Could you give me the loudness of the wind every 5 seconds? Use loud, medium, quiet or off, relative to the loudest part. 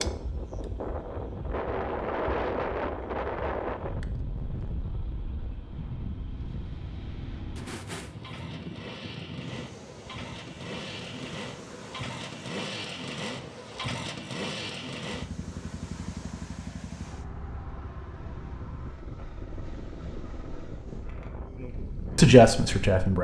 loud, medium, quiet, quiet, medium.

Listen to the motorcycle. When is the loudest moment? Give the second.
14 s.